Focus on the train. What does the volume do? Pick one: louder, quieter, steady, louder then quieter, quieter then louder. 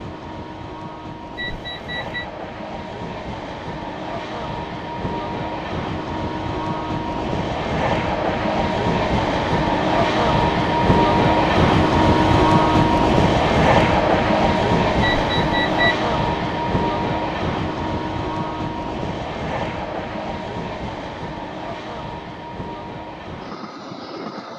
louder then quieter.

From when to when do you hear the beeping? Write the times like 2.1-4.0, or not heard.
1.4-2.2, 15.0-15.9.